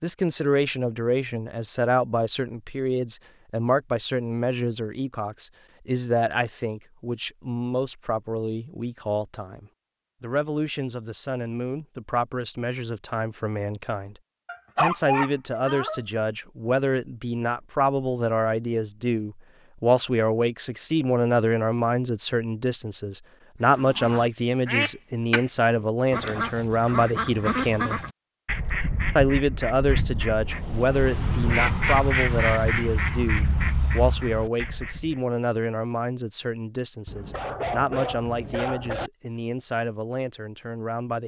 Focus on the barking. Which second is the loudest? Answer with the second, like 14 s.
15 s.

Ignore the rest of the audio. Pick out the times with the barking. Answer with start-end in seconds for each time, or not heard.
14.4-16.0, 37.0-39.1.